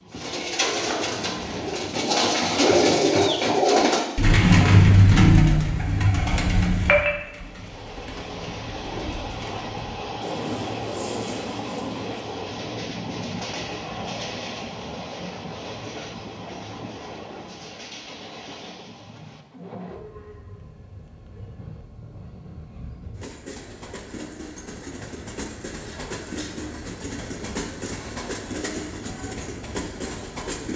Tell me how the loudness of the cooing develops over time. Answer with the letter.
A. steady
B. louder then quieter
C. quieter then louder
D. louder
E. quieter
B.